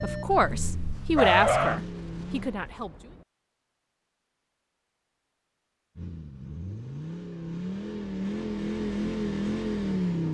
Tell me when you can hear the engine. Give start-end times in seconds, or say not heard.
0.0-2.5, 6.0-10.2.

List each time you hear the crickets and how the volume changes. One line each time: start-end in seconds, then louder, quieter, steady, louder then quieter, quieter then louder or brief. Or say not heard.
not heard.